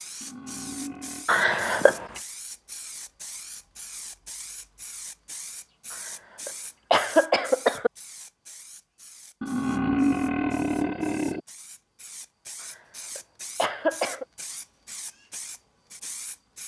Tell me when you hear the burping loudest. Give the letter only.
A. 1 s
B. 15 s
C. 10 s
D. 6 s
C.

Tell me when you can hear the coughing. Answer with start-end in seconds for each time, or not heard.
1.2-2.0, 6.5-7.9, 13.2-14.2.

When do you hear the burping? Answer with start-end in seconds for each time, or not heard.
0.2-1.2, 9.4-11.4.